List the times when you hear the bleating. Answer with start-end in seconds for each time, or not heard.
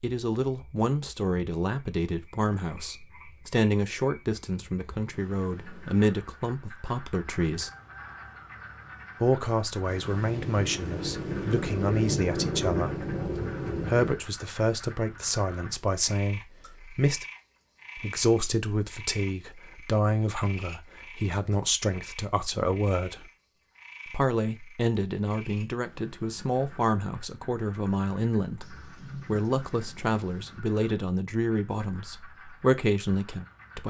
not heard.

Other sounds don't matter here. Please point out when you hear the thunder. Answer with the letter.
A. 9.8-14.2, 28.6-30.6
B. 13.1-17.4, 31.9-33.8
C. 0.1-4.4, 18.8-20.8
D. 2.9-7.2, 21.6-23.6
A.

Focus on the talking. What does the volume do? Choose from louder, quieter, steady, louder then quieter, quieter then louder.
steady.